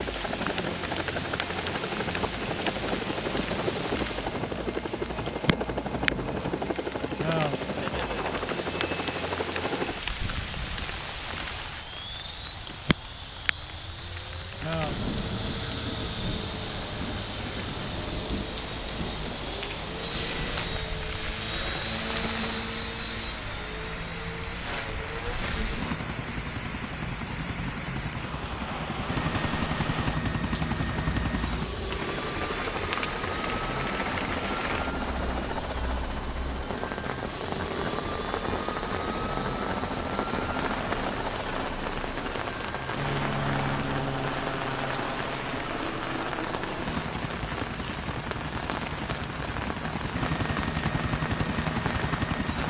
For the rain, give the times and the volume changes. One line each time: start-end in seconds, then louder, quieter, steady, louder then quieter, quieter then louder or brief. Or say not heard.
0.0-52.6 steady.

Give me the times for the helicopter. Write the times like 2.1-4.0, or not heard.
0.0-52.6.